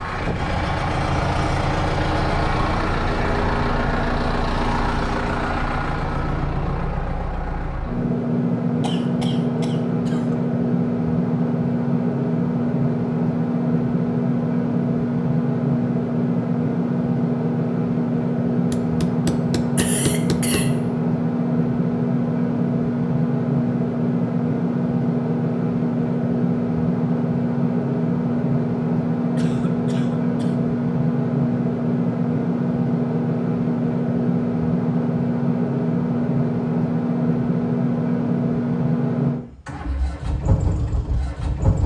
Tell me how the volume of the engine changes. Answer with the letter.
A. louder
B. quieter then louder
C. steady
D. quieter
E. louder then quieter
C.